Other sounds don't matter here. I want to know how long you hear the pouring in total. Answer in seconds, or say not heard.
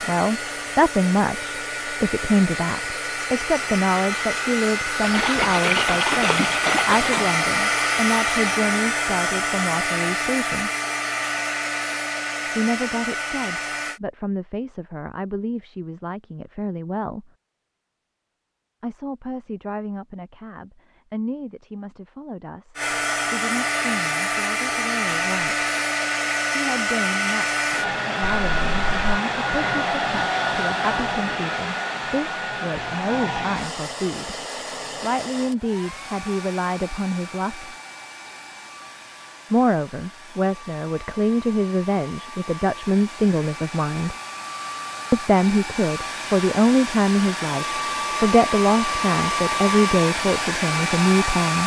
3 s.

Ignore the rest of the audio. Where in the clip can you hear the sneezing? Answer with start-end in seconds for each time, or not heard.
not heard.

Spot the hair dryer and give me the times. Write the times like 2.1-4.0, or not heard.
0.0-14.0, 22.8-51.6.